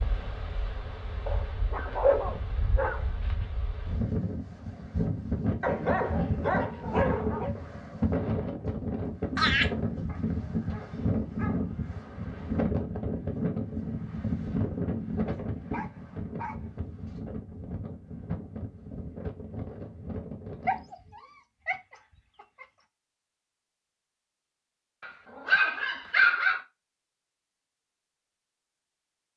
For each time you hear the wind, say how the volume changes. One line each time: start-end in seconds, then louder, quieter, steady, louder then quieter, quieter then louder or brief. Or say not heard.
0.0-20.9 louder then quieter.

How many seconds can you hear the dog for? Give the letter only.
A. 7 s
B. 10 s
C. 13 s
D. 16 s
B.